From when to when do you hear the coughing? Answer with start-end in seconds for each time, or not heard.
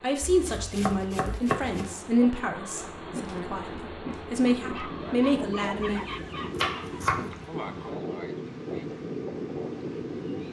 7.3-8.8.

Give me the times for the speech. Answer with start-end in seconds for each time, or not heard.
0.0-6.0.